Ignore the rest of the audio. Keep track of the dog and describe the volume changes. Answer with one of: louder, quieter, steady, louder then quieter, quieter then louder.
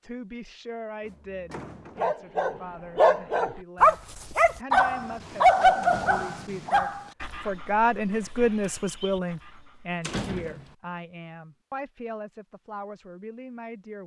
quieter.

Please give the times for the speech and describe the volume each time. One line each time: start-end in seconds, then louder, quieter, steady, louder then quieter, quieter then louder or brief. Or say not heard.
0.0-14.0 louder then quieter.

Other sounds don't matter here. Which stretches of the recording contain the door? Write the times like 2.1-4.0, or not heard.
1.0-2.1, 5.8-6.3, 10.0-10.8.